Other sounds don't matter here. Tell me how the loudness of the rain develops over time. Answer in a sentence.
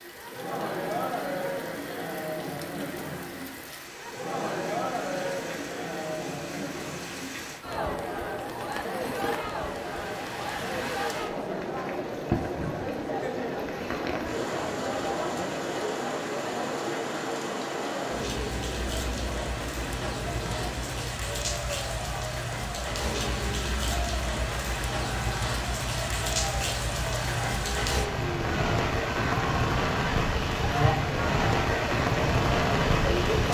The volume of the rain goes up.